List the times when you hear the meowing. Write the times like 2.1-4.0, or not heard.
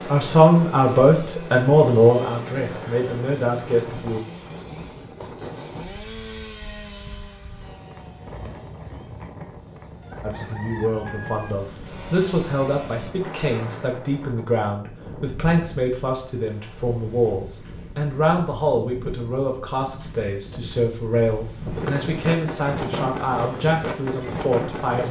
not heard.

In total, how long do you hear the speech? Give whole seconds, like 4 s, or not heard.
19 s.